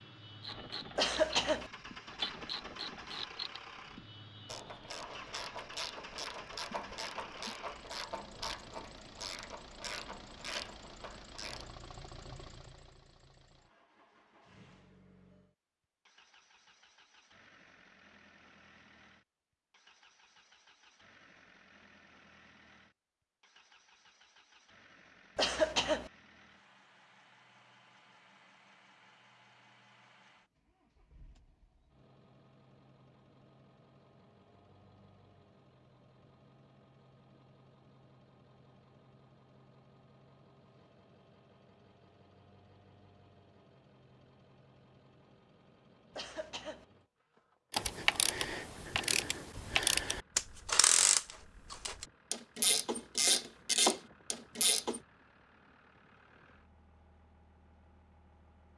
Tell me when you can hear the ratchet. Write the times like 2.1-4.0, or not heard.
0.4-11.7, 47.7-55.0.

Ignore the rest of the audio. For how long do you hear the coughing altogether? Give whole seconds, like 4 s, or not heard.
2 s.